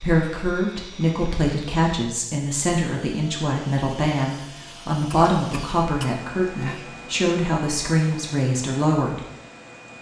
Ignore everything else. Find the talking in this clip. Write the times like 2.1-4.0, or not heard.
0.0-9.2.